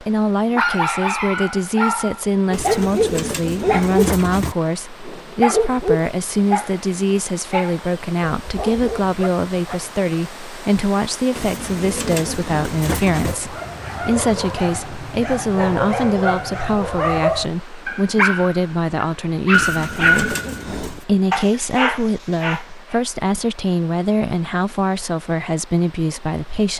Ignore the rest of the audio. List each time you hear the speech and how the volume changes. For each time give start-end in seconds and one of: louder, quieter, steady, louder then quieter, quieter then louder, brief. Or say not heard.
0.0-26.7 steady.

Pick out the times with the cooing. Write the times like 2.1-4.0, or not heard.
2.5-4.5, 11.3-13.3, 19.5-21.1.